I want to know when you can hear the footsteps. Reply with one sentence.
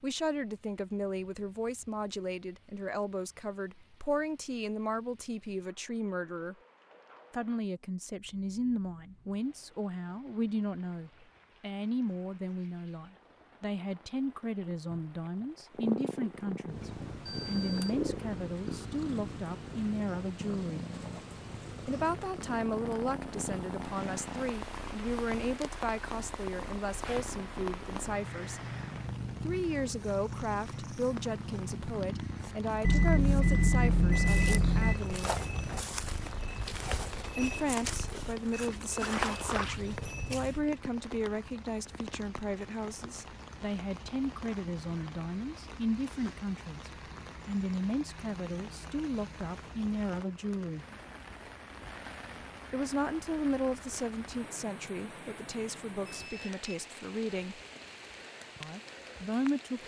The footsteps can be heard from 34.0 to 40.7 s.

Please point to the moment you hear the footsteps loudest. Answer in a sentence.
The loudest moment of the footsteps is at 39 seconds.